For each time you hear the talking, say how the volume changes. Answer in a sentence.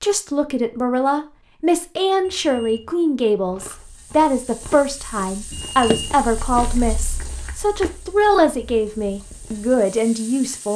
You can hear the talking from 0.0 to 10.7 s, at a steady volume.